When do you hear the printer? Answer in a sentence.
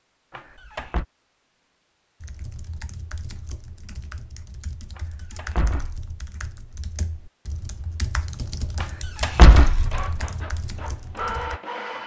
You can hear the printer from 9.6 to 12.0 s.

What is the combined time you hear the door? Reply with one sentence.
The door can be heard for 3 seconds in total.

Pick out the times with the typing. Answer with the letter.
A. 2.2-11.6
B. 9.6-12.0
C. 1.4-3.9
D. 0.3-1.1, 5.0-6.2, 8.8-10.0
A.